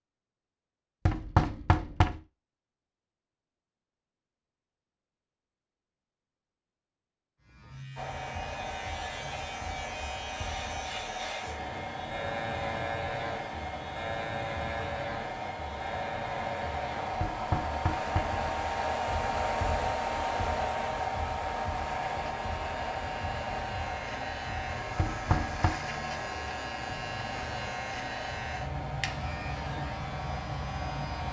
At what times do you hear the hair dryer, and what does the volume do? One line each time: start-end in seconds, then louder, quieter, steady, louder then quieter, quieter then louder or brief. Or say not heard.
8.0-31.2 louder then quieter.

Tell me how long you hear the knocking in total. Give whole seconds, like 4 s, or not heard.
3 s.